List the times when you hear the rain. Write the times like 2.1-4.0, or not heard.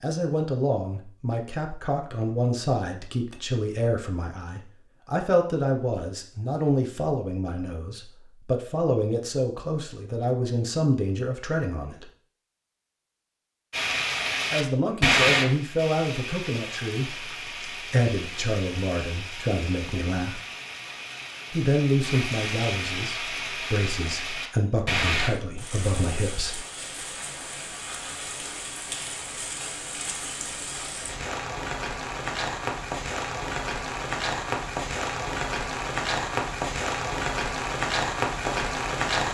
13.7-39.2.